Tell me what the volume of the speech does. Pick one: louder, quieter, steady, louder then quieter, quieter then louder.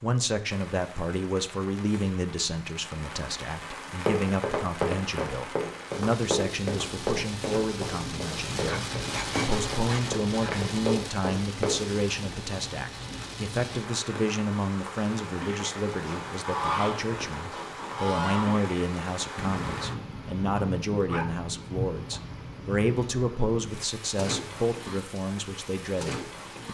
steady.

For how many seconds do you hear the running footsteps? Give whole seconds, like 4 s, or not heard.
8 s.